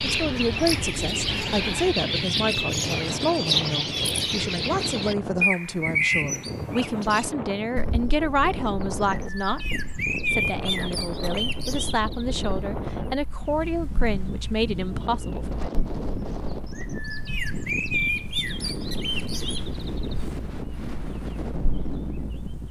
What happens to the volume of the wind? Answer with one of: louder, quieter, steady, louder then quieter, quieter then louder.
steady.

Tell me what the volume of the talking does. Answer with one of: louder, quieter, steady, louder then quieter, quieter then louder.
steady.